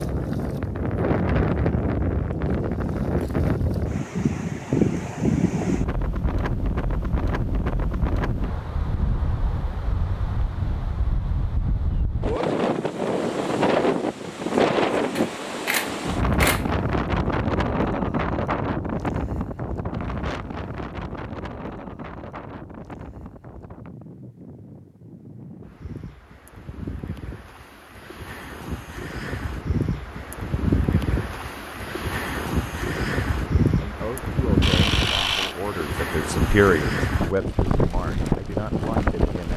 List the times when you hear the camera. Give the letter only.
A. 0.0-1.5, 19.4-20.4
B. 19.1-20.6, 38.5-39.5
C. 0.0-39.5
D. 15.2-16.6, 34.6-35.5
D.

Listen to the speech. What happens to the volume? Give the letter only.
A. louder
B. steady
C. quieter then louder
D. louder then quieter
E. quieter
D.